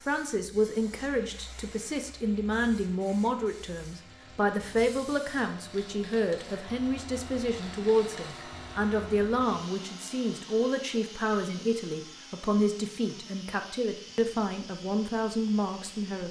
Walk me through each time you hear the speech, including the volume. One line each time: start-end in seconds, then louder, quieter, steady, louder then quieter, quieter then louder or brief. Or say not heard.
0.1-16.2 steady.